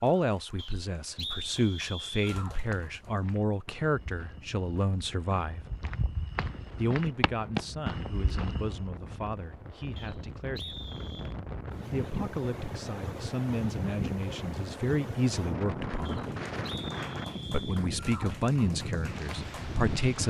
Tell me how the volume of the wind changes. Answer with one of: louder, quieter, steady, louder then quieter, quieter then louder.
louder.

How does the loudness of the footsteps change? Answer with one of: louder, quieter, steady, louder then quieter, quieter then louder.
louder.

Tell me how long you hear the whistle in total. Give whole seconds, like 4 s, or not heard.
5 s.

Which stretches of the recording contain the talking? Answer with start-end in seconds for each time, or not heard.
0.0-5.6, 6.8-10.8, 11.9-16.2, 17.5-20.2.